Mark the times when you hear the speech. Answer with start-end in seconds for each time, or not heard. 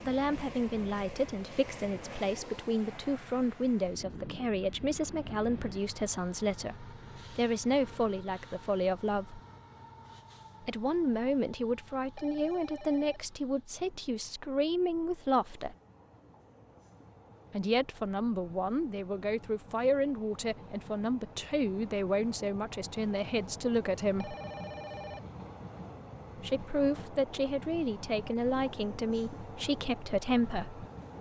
0.0-9.4, 10.6-15.8, 17.5-24.4, 26.4-30.9.